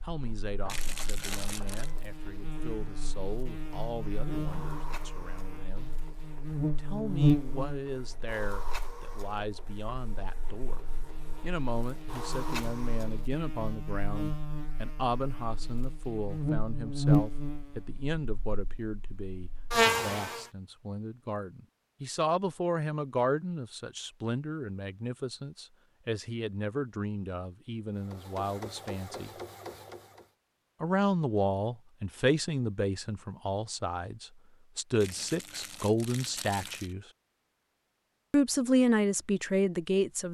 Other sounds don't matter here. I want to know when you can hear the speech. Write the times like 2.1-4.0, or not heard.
0.0-6.0, 6.8-10.8, 11.4-29.4, 30.8-37.0, 38.3-40.3.